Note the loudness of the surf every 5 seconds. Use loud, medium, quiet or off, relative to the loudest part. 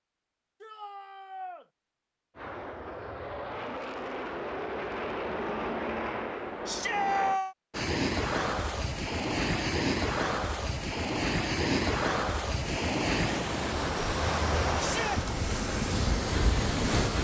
off, loud, loud, loud.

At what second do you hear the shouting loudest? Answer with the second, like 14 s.
7 s.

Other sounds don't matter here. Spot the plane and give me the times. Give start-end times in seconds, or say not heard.
2.4-7.4, 12.6-17.1.